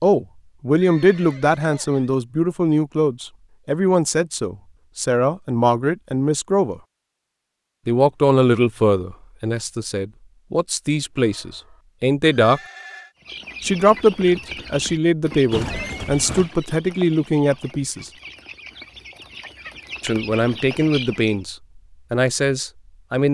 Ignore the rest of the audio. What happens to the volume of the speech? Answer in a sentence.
The loudness of the speech stays about the same.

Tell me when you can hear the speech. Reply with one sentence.
You can hear the speech from 0.0 to 6.8 s, from 7.8 to 12.6 s, from 13.6 to 18.1 s and from 20.0 to 23.2 s.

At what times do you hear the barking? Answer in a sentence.
The barking can't be heard in this clip.